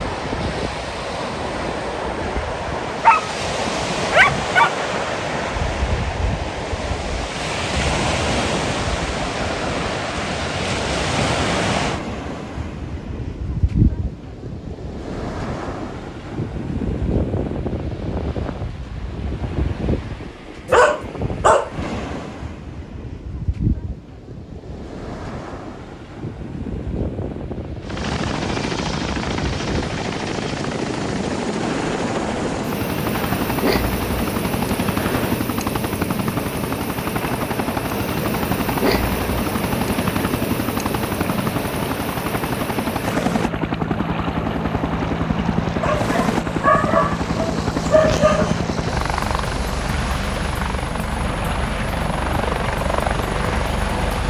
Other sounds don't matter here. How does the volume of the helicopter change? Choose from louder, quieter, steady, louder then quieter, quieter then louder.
steady.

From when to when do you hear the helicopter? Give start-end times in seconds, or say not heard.
27.8-54.2.